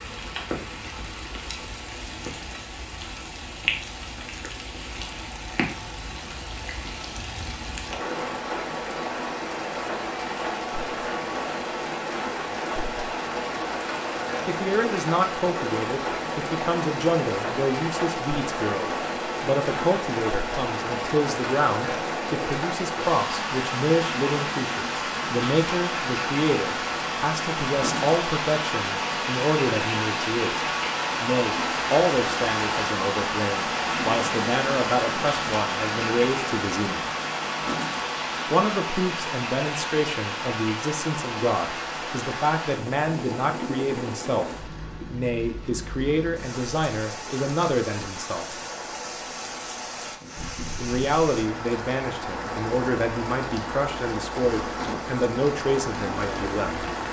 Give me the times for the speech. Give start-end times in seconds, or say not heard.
14.4-37.0, 38.5-48.5, 50.8-56.9.